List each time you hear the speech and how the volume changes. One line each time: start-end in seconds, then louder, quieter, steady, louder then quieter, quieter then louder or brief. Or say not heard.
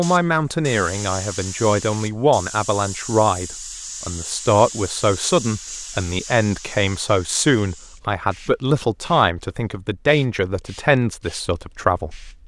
0.0-12.3 steady.